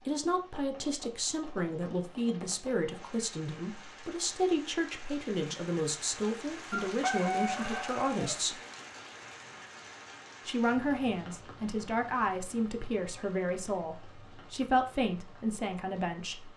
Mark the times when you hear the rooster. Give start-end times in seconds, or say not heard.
6.7-8.3.